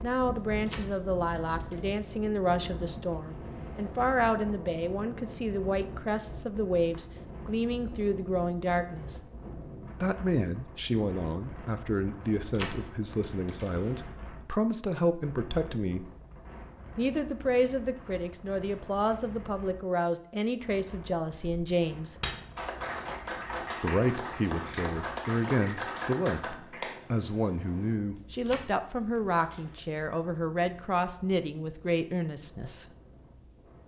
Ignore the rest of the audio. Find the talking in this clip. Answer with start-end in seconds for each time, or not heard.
0.0-9.2, 9.9-16.1, 16.9-22.2, 23.8-32.9.